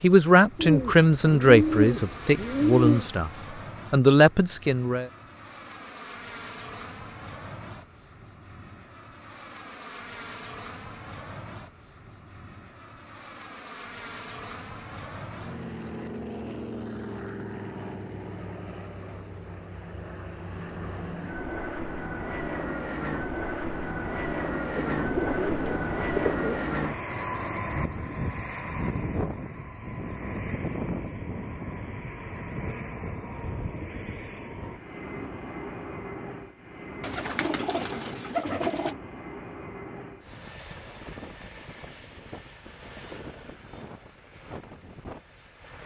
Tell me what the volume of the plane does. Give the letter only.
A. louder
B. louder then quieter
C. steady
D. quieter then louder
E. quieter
B.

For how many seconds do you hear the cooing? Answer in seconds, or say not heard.
6 s.